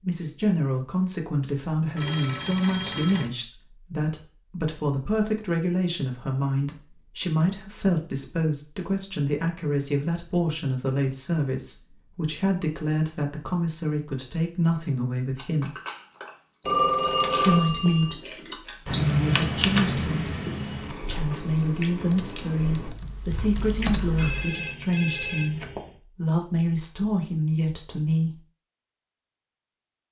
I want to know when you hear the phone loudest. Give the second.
17 s.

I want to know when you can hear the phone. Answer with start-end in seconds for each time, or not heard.
1.9-3.3, 16.6-18.1, 24.1-25.9.